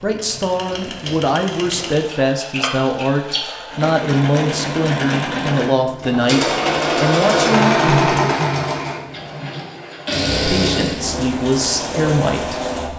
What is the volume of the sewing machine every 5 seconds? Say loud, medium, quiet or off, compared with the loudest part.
medium, loud, loud.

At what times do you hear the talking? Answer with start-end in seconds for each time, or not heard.
0.0-8.4, 10.4-12.9.